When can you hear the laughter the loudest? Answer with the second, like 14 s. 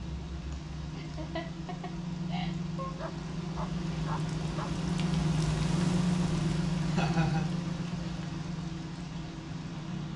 7 s.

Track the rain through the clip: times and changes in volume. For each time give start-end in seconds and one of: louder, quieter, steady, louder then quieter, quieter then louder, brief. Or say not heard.
0.0-10.1 louder then quieter.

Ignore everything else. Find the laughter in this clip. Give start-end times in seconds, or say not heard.
0.5-3.0, 6.8-7.5.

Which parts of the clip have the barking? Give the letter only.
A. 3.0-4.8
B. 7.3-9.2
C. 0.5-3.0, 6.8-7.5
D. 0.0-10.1
A.